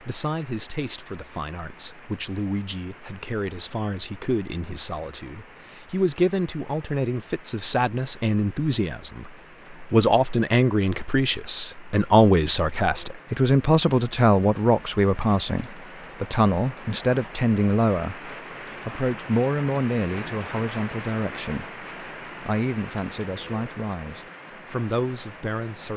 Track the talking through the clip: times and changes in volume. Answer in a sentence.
The talking can be heard from 0.0 to 25.9 s, getting louder then quieter.